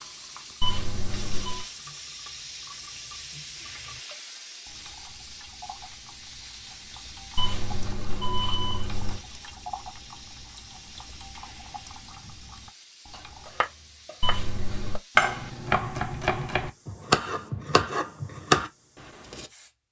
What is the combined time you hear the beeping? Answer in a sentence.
You can hear the beeping for 4 seconds altogether.